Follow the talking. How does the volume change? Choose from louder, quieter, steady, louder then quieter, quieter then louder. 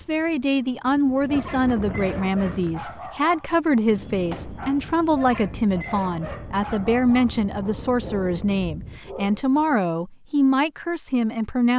steady.